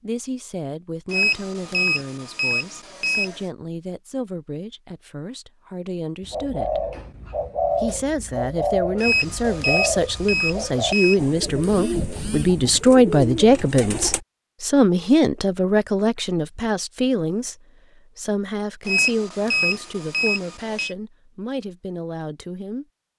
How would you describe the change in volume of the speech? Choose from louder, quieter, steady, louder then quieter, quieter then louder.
louder then quieter.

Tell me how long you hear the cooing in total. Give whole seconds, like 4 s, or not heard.
8 s.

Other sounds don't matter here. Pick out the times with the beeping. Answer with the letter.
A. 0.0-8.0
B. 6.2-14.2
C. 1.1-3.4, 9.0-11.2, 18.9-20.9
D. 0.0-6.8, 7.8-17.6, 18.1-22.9
C.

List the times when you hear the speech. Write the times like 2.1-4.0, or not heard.
0.0-6.8, 7.8-17.6, 18.1-22.9.